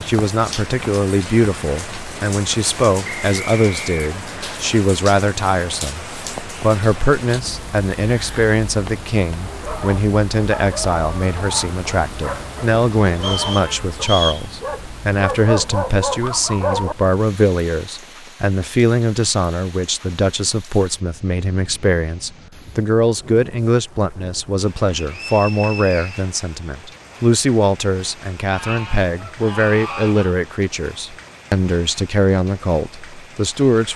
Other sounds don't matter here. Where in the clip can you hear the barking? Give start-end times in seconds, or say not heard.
9.4-16.9.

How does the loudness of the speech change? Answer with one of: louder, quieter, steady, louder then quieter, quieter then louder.
steady.